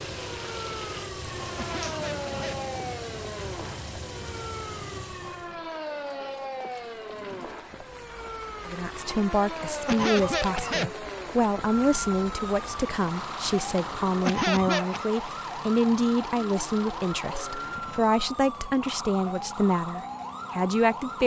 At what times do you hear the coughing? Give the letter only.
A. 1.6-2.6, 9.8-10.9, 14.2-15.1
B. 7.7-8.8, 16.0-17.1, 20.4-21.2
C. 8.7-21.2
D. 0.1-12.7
A.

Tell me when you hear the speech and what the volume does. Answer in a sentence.
The speech can be heard from 8.7 to 21.2 s, at a steady volume.